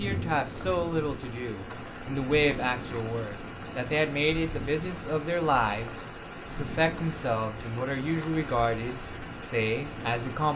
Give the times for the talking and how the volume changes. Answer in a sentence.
You can hear the talking from 0.0 to 10.5 s, at a steady volume.